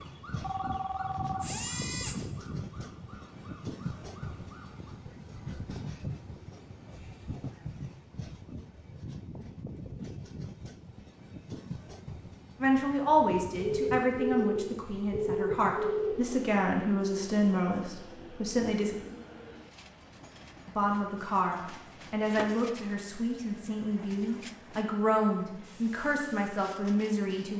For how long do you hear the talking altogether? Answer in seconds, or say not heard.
13 s.